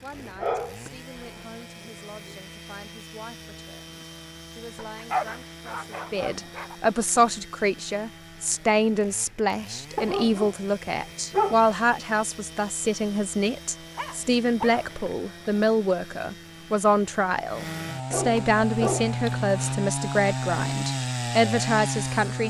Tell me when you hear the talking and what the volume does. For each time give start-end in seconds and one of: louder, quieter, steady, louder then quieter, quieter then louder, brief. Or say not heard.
0.0-22.4 louder.